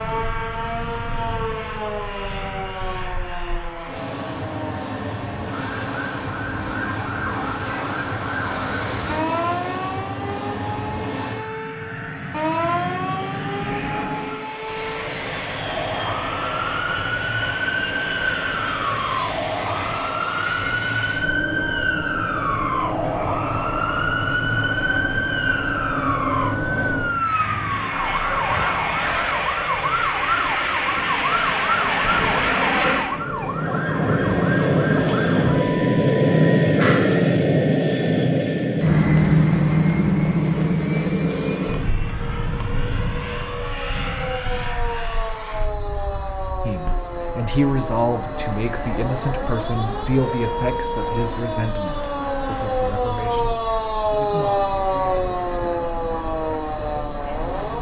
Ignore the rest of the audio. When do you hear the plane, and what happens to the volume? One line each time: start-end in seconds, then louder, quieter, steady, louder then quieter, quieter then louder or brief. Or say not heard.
0.0-57.7 louder then quieter.